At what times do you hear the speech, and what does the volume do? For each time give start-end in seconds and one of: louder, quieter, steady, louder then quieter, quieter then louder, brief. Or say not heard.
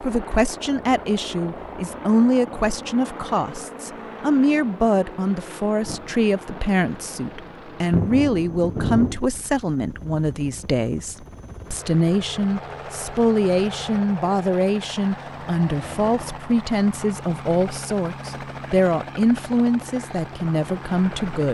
0.0-21.4 steady.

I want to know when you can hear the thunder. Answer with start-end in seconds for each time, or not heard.
5.8-9.2.